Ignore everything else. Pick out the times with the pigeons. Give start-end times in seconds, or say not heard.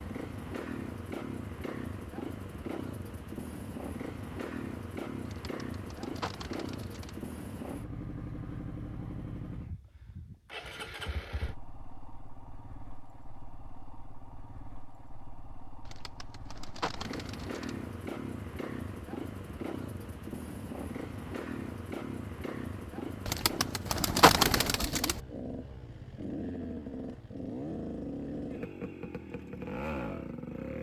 5.2-7.2, 15.8-17.8, 23.2-25.2.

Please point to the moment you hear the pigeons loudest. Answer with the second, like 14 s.
24 s.